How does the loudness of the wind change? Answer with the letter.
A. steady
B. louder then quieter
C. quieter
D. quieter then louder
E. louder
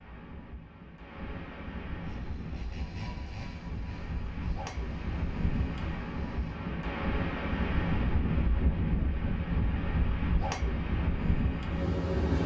E.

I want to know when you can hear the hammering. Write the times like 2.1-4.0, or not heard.
not heard.